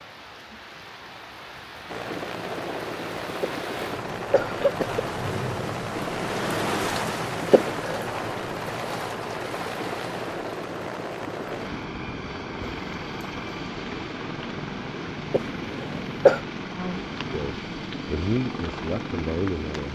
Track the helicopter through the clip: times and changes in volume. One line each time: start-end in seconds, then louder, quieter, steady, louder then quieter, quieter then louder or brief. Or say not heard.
1.9-19.8 steady.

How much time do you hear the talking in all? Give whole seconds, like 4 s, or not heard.
3 s.